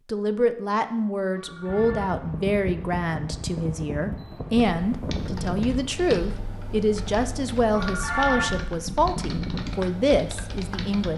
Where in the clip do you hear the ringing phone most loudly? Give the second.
8 s.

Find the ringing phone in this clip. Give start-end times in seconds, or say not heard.
1.4-2.1, 7.7-8.6.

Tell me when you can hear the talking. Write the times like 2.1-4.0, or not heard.
0.1-11.1.